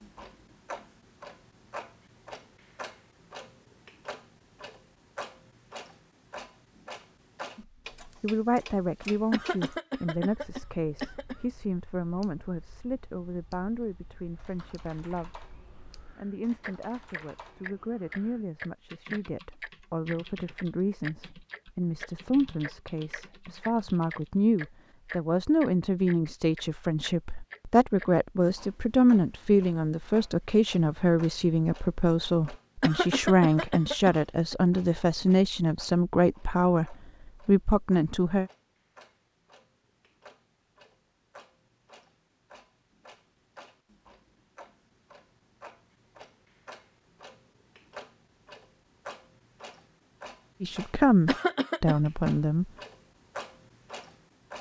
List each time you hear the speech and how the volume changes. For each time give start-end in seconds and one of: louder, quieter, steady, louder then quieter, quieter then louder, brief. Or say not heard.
7.5-15.4 quieter
16.1-38.5 louder
50.6-52.6 brief.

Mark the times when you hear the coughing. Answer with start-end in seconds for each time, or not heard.
9.3-11.3, 32.8-34.5, 51.2-52.0.